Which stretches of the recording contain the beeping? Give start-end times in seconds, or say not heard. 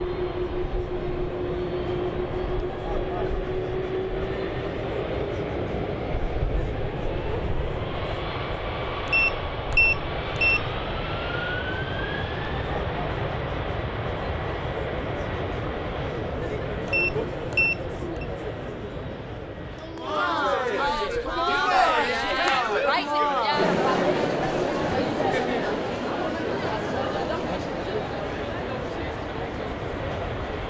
9.1-10.6, 16.9-18.2.